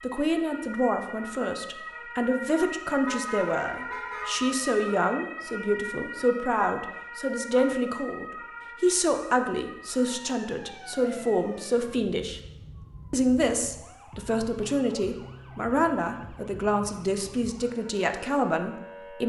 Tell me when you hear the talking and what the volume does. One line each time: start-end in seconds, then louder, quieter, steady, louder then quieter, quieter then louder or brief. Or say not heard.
0.0-12.4 steady
13.1-19.2 steady.